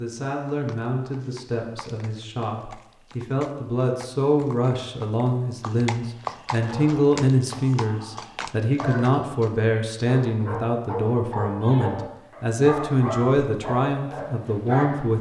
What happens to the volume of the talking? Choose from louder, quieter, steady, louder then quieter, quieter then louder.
louder.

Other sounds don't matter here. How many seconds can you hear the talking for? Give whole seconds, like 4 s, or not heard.
15 s.